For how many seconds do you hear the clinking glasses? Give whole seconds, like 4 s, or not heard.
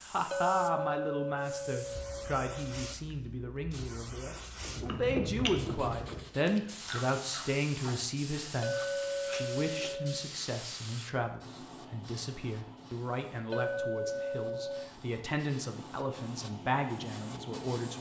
6 s.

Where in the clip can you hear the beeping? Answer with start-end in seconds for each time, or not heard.
not heard.